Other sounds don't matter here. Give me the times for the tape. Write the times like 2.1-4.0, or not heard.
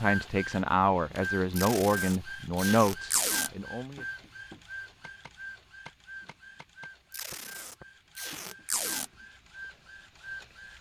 1.6-3.5, 7.1-9.1.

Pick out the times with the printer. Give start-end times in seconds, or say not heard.
0.0-10.7.